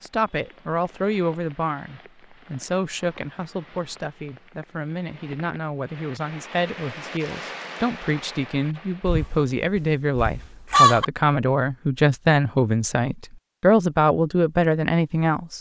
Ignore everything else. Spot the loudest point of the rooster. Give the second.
11 s.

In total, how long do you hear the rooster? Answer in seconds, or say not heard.
2 s.